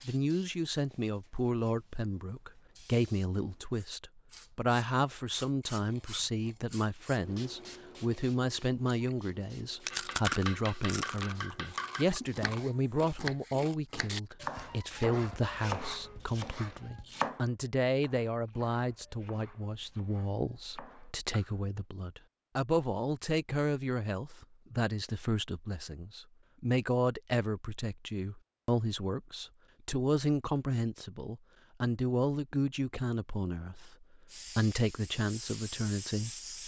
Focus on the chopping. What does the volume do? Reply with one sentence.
The loudness of the chopping goes down.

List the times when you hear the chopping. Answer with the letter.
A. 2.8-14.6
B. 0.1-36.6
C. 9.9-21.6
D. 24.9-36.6
C.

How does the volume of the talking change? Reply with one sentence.
The loudness of the talking stays about the same.